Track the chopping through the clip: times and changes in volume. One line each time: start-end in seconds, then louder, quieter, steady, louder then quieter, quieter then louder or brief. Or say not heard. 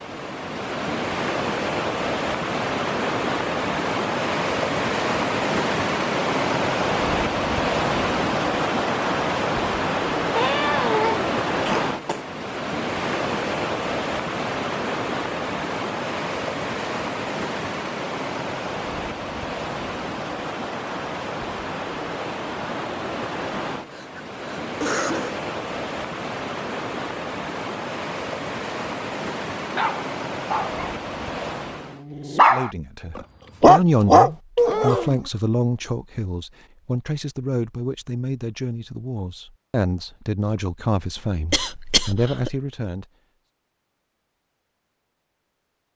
not heard.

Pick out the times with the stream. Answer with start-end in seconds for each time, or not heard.
0.0-32.0.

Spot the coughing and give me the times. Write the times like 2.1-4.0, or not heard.
10.3-12.2, 23.9-25.4, 41.5-42.5.